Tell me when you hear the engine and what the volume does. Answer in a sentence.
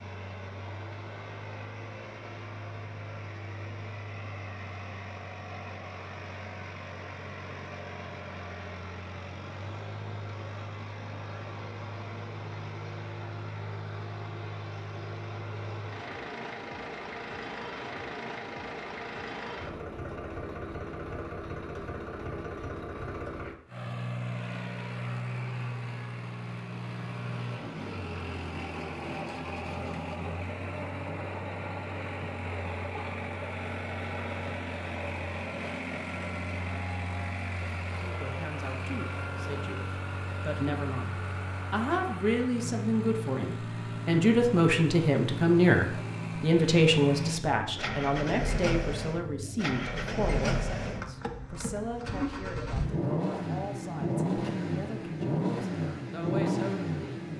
You can hear the engine from 0.0 to 57.3 s, getting louder.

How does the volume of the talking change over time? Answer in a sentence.
The volume of the talking goes up, then down.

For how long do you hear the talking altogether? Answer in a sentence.
You can hear the talking for 19 seconds altogether.